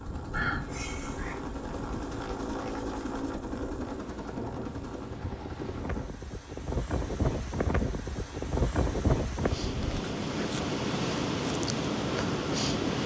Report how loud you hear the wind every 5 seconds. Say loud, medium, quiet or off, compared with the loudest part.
quiet, loud, loud.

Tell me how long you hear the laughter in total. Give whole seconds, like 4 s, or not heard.
2 s.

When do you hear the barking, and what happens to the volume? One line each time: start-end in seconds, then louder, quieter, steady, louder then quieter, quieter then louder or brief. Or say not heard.
not heard.